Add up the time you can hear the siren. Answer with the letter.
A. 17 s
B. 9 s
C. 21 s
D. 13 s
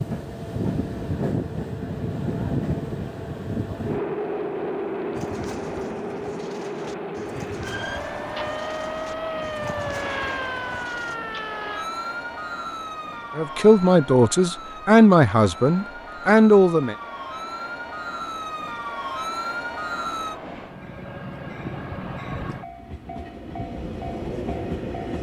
D.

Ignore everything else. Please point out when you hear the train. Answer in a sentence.
You can hear the train from 0.0 to 25.1 s.